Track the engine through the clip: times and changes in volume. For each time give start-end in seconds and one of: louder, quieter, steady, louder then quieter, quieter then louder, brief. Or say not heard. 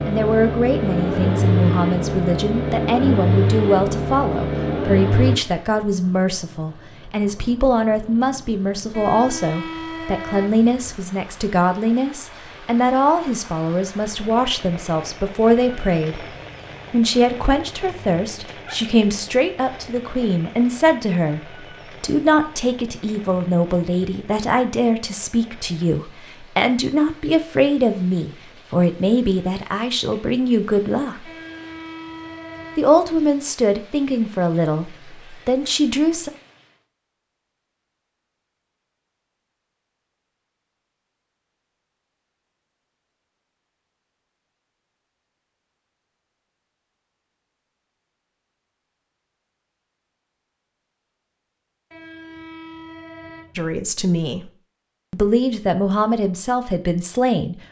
0.0-5.4 steady.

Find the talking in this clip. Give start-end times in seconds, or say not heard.
0.1-16.2, 16.9-31.3, 32.8-36.3, 53.5-54.5, 55.1-57.6.